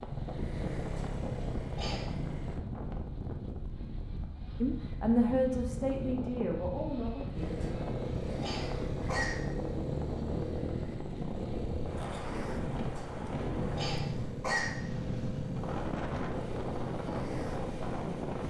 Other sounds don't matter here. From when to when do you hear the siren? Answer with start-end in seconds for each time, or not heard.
not heard.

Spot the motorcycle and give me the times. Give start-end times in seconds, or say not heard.
0.0-2.6, 7.3-18.4.